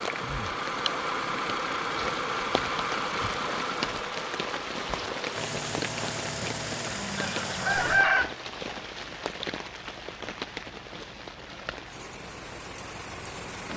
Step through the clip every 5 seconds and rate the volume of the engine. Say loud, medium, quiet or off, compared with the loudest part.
loud, medium, quiet.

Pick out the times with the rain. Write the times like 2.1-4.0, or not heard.
0.0-13.7.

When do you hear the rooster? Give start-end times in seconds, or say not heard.
7.2-8.3.